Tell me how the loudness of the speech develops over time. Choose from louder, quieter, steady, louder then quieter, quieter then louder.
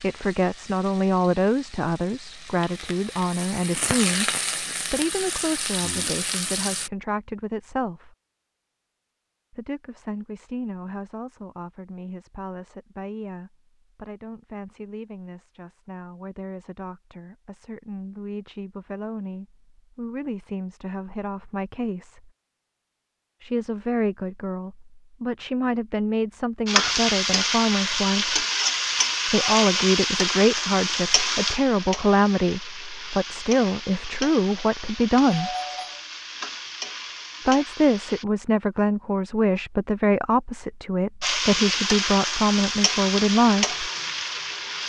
quieter then louder.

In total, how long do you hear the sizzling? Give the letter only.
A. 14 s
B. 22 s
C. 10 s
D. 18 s
B.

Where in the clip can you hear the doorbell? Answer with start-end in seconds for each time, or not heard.
35.3-36.0.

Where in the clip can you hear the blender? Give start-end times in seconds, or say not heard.
not heard.